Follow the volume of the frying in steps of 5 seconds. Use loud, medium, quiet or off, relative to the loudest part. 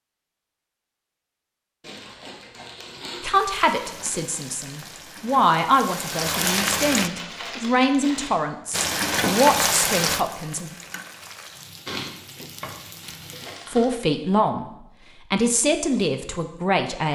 quiet, loud, medium, off.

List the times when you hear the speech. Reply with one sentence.
You can hear the speech from 3.2 to 10.8 s, from 13.7 to 14.7 s and from 15.3 to 17.1 s.